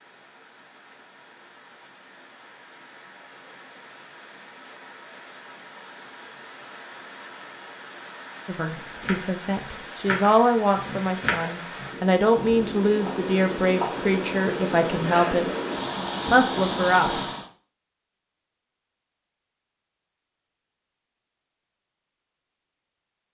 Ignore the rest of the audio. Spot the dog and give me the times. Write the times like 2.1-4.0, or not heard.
not heard.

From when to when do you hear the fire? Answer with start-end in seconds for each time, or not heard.
not heard.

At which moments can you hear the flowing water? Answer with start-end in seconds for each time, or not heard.
0.0-17.5.